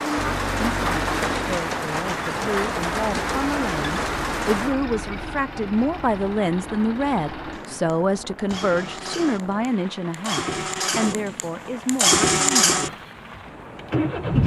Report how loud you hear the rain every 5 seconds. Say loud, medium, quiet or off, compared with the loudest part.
loud, quiet, quiet.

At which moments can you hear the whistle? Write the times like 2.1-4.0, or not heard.
not heard.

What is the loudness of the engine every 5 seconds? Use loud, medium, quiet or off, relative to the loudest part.
medium, quiet, loud.